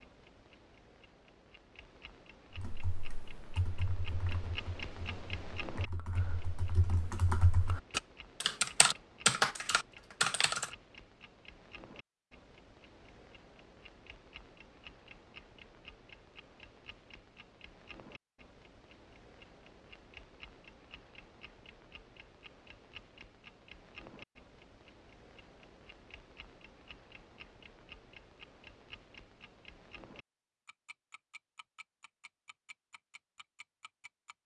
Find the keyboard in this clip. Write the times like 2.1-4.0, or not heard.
2.5-10.7.